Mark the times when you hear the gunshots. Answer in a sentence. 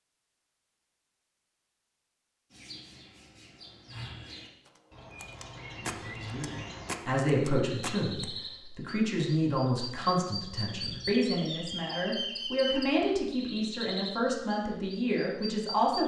The gunshots can be heard from 4.7 to 8.2 s.